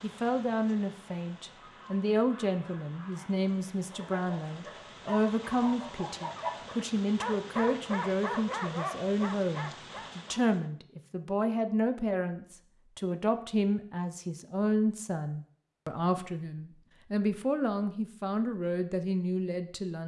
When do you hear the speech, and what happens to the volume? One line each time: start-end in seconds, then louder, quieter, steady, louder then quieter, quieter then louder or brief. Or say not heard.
0.0-20.0 steady.